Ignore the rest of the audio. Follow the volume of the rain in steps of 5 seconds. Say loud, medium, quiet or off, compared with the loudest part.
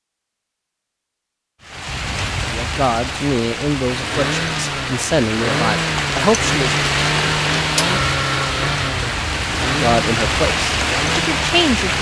medium, loud, loud.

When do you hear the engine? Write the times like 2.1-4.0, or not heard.
3.9-11.9.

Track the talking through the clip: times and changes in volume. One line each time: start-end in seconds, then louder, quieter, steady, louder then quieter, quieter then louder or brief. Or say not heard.
2.5-6.8 quieter then louder
9.7-11.9 brief.